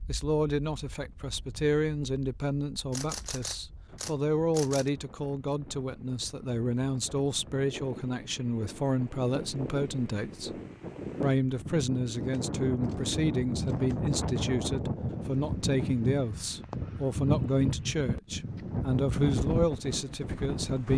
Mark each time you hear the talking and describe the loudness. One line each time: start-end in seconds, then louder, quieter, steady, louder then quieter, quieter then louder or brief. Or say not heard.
0.1-10.6 steady
11.2-20.9 steady.